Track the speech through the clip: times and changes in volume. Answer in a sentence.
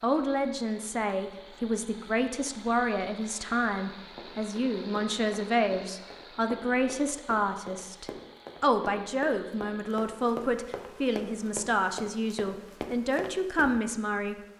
You can hear the speech from 0.0 to 14.5 s, at a steady volume.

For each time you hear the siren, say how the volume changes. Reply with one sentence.
The siren can't be heard in this clip.